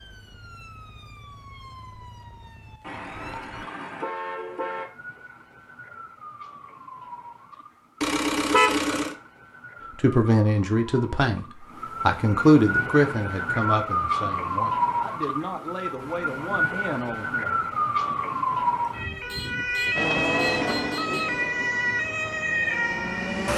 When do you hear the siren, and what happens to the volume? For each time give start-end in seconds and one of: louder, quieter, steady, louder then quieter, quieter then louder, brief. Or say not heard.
0.0-23.5 louder.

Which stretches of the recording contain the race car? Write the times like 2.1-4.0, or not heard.
19.9-23.5.